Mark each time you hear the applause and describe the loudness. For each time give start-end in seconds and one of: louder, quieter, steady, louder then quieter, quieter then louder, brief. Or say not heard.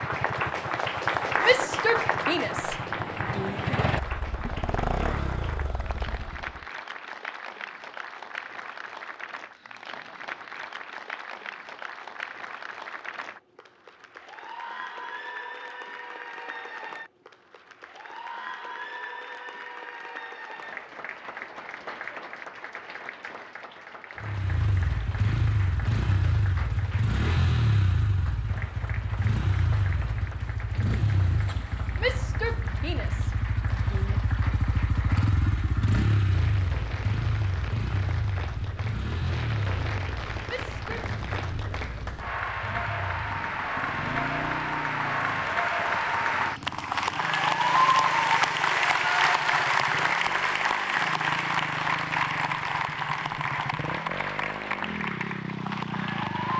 0.0-56.5 quieter then louder.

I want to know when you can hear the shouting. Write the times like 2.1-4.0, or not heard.
1.4-3.6, 31.9-34.2, 40.5-41.0.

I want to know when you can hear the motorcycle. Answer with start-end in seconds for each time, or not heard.
0.0-6.7, 24.2-56.5.